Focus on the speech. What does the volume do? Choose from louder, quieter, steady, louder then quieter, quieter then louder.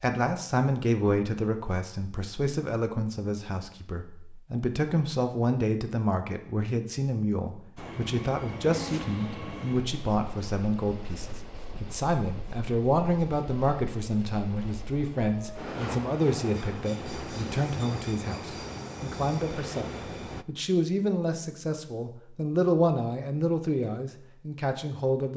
steady.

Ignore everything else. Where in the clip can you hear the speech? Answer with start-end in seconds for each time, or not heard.
0.0-25.3.